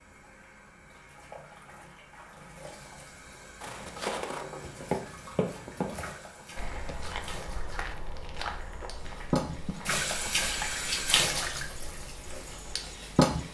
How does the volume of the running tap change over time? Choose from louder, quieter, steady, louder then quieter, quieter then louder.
louder.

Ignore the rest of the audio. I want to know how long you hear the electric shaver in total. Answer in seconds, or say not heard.
not heard.